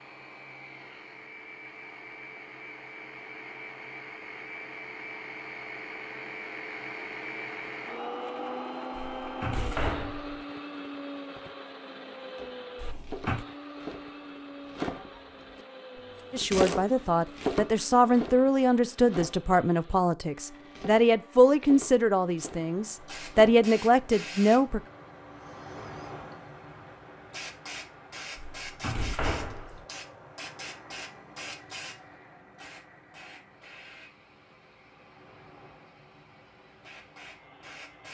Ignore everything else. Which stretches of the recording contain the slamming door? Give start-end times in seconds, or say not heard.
8.9-10.4, 12.8-13.4, 28.4-29.9.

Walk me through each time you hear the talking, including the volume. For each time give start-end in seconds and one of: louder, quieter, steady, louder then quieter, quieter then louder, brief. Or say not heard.
16.3-24.8 steady.